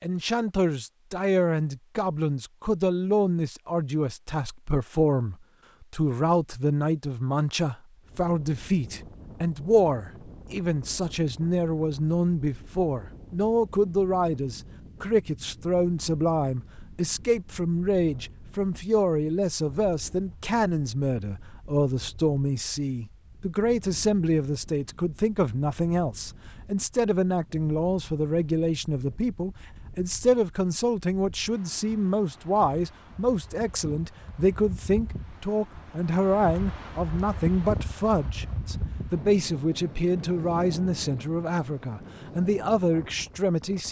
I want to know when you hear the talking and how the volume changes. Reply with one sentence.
You can hear the talking from 0.0 to 43.8 s, at a steady volume.